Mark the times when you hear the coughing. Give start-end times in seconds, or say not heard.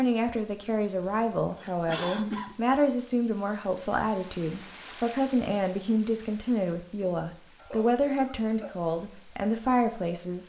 1.6-2.5, 7.5-8.7.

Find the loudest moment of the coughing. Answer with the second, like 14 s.
2 s.